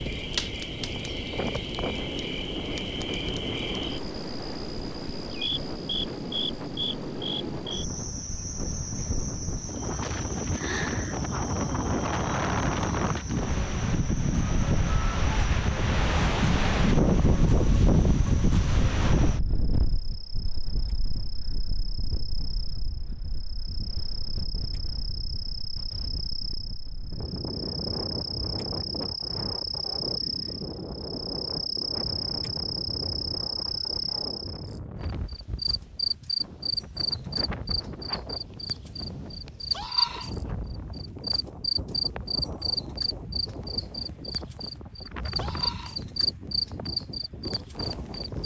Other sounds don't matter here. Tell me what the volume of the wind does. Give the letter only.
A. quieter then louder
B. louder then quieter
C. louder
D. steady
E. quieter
B.